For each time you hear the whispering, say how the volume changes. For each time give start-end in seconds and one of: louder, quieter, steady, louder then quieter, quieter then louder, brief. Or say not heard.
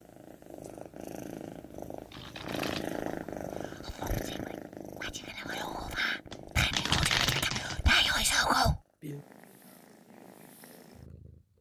2.8-8.8 louder.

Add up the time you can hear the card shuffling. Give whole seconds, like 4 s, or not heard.
2 s.